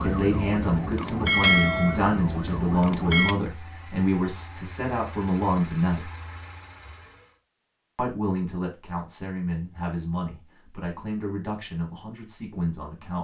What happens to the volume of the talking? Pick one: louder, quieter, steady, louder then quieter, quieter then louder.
quieter.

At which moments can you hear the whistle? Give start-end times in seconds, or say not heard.
not heard.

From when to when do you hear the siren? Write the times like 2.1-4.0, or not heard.
0.0-3.4.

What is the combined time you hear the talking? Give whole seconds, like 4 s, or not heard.
11 s.